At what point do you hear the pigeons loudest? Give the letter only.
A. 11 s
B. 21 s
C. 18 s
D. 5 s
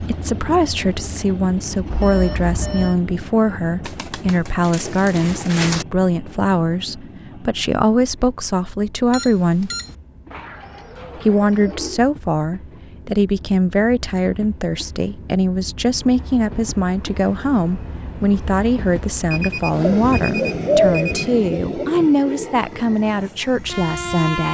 B.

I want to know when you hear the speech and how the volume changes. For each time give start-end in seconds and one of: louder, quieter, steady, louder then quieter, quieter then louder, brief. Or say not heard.
0.0-9.7 steady
11.2-24.4 steady.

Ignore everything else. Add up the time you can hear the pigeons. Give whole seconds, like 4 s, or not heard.
6 s.